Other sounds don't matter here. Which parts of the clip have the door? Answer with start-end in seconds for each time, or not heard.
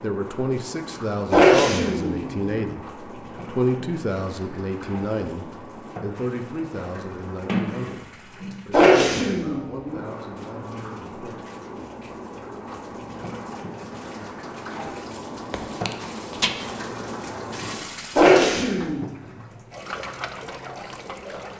7.5-8.7, 15.5-16.5.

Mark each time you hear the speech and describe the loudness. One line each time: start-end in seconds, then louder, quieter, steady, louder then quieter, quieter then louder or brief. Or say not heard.
0.0-11.5 quieter.